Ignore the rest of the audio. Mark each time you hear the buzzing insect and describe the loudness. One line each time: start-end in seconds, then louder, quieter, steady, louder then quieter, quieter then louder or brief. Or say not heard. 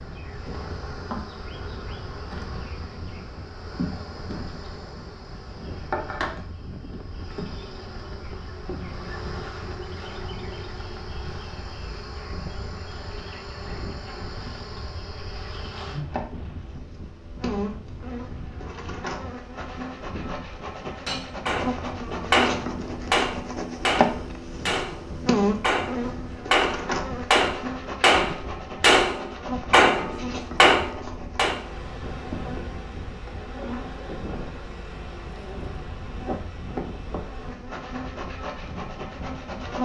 0.0-39.8 louder then quieter.